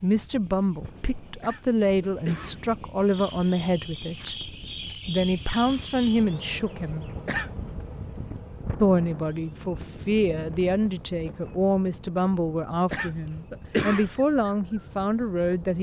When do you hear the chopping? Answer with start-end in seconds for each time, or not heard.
not heard.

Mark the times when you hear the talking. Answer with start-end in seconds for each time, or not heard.
0.0-7.1, 8.8-15.7.